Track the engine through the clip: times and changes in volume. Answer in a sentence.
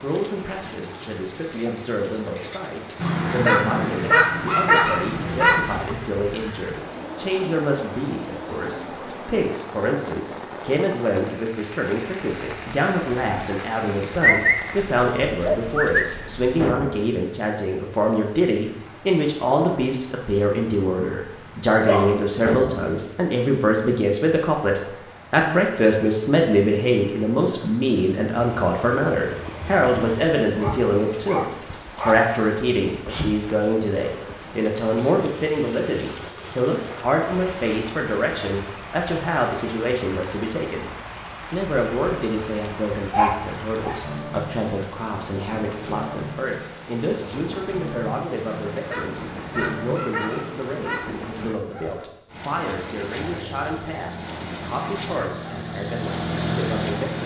The engine can be heard from 53.1 to 57.2 s, getting louder.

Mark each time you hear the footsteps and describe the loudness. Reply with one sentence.
The footsteps can't be heard in this clip.